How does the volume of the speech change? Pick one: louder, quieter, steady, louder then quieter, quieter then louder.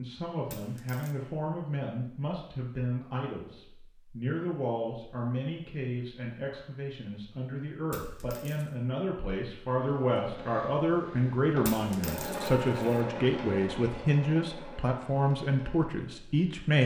louder.